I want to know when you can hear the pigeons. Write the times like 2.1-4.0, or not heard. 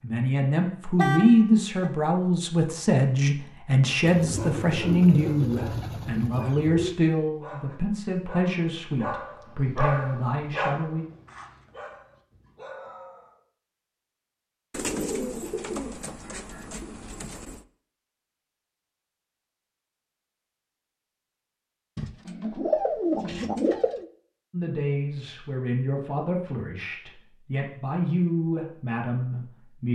4.0-7.0, 14.7-17.6, 21.9-24.1.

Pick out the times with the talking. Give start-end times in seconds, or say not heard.
0.0-11.1, 24.5-29.9.